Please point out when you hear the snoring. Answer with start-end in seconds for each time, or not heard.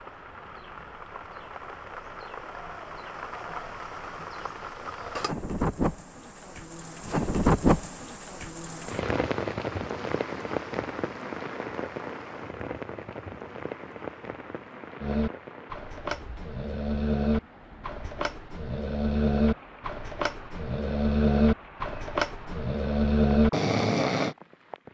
15.0-24.4.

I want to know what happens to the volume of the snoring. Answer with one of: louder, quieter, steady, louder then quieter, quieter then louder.
louder.